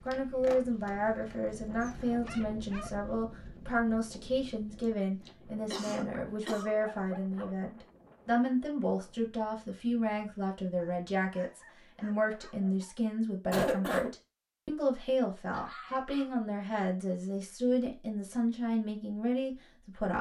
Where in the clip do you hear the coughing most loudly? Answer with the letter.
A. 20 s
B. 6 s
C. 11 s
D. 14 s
D.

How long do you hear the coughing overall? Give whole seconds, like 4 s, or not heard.
2 s.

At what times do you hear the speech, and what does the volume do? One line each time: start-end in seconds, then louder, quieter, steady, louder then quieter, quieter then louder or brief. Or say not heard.
0.1-20.1 steady.